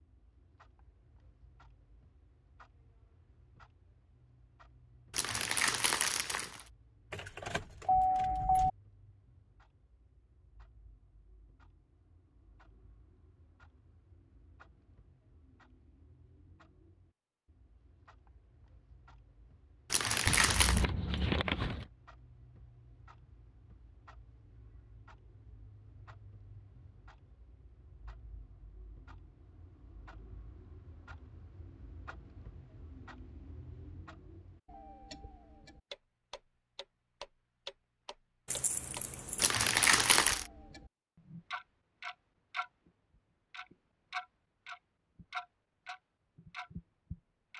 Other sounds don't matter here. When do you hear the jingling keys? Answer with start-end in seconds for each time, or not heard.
7.1-8.7, 20.2-21.9, 38.5-39.5.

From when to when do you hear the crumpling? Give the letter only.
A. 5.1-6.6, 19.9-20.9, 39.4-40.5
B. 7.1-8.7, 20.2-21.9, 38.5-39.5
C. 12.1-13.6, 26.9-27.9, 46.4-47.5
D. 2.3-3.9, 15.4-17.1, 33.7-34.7
A.